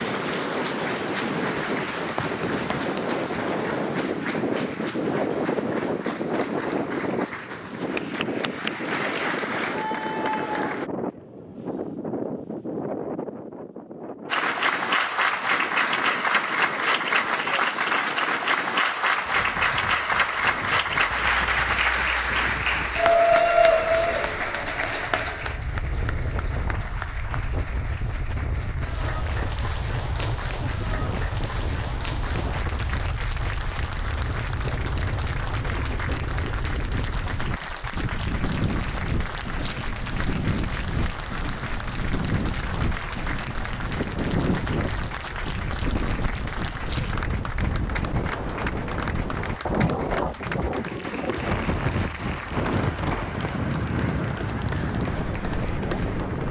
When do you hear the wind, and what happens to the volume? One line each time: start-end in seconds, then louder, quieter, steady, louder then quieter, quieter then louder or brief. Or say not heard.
0.0-56.4 quieter then louder.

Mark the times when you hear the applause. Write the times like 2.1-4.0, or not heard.
0.0-10.9, 14.2-56.4.